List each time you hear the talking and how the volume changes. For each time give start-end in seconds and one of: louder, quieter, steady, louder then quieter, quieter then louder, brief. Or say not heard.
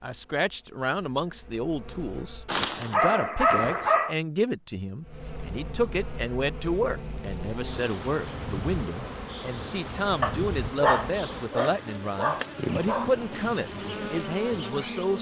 0.0-15.1 steady.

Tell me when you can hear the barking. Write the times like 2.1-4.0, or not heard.
2.5-4.2, 10.2-13.1.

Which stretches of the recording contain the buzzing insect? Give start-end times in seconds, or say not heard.
0.0-2.6, 5.0-15.1.